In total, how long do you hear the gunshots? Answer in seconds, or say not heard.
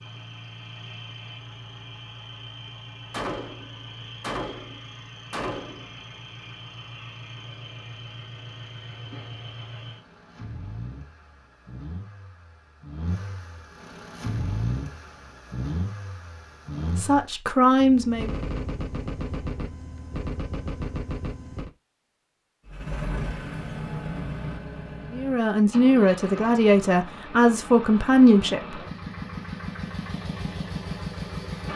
7 s.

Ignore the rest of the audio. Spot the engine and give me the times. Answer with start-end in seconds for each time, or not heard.
0.0-17.3, 22.6-31.7.